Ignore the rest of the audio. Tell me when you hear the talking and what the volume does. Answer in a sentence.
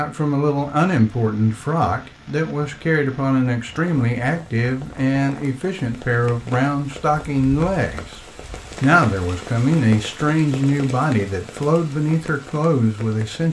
You can hear the talking from 0.0 to 8.2 s, at a steady volume; and from 8.8 to 13.4 s, at a steady volume.